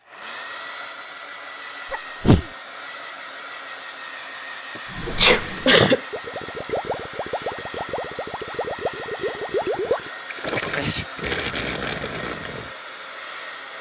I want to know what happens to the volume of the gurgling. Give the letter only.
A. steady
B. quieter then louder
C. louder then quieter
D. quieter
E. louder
E.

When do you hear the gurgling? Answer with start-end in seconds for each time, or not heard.
4.8-12.8.